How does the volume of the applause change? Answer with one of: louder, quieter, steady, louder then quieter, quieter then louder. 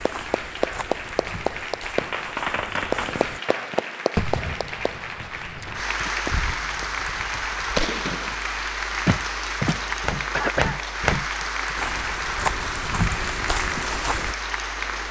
steady.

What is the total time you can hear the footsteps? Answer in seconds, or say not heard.
9 s.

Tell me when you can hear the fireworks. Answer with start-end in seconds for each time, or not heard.
1.2-8.3.